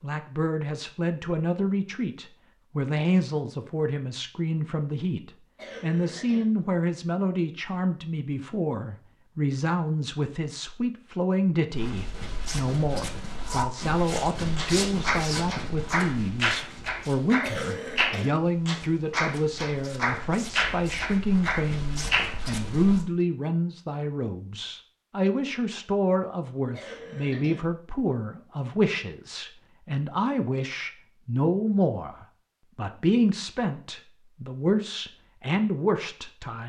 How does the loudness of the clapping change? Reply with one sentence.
The volume of the clapping stays about the same.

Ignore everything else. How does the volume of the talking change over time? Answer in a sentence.
The loudness of the talking stays about the same.